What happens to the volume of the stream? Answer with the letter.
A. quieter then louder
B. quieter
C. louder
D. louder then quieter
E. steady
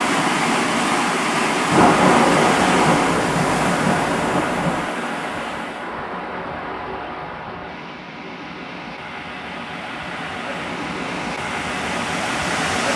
A.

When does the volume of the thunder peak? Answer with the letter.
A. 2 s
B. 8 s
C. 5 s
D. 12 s
A.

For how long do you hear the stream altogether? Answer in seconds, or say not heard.
13 s.